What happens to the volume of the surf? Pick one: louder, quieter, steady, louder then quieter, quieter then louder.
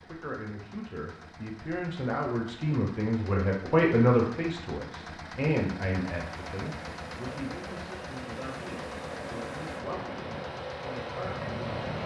louder.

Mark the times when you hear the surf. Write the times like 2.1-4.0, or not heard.
6.2-12.0.